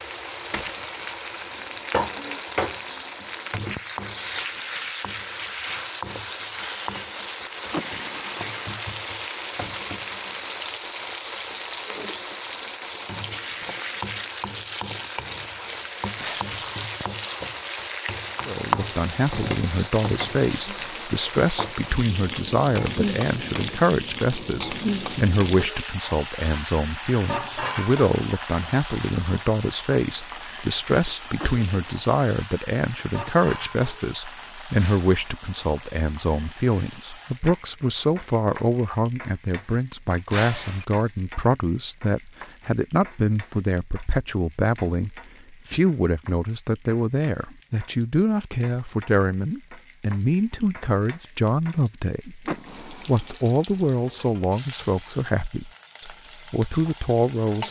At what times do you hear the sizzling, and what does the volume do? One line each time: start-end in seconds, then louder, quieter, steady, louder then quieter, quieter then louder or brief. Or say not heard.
0.0-57.6 quieter.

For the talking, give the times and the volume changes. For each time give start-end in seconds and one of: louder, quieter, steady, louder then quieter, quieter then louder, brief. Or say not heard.
18.4-57.6 steady.